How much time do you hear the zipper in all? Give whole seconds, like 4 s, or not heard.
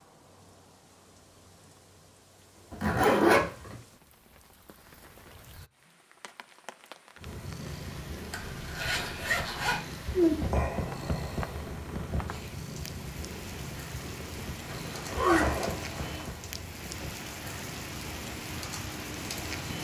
4 s.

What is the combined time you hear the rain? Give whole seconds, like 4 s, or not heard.
20 s.